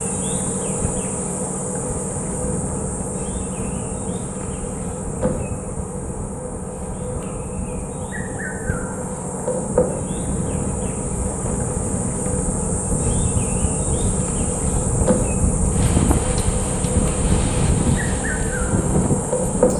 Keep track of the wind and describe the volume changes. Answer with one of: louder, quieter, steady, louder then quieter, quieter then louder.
louder.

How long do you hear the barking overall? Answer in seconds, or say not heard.
not heard.